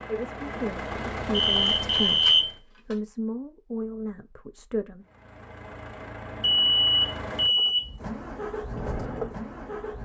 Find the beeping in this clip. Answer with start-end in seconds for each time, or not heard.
1.3-2.5, 6.4-7.9.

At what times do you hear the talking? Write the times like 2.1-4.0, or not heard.
0.0-5.0.